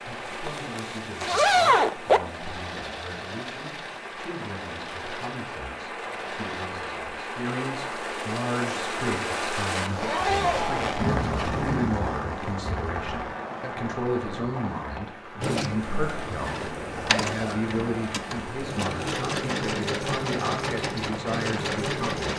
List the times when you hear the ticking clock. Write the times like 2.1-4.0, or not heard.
not heard.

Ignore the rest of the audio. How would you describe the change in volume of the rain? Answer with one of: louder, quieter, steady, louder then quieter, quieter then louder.
louder then quieter.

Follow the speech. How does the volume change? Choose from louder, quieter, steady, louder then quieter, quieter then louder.
louder.